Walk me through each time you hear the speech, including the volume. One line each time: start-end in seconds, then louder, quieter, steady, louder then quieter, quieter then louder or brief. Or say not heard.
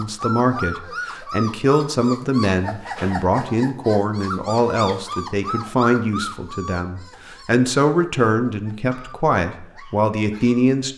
0.0-10.9 steady.